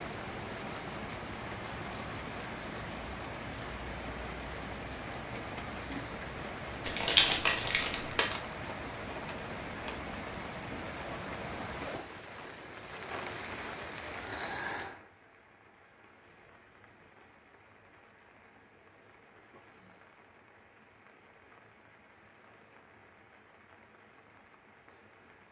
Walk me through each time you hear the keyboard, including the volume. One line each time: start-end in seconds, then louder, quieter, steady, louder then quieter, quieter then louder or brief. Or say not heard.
not heard.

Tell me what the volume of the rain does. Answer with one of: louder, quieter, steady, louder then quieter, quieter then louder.
quieter.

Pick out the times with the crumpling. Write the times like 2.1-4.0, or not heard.
6.8-8.4.